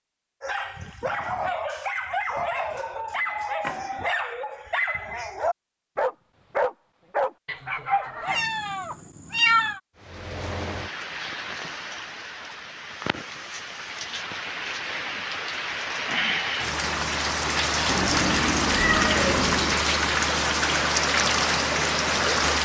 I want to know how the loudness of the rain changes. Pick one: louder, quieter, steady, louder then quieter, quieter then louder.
louder.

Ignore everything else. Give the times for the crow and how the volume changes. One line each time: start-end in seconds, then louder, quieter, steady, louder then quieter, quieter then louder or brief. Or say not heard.
not heard.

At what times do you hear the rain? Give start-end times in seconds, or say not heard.
9.9-22.6.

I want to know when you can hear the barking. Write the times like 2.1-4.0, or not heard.
0.4-8.4.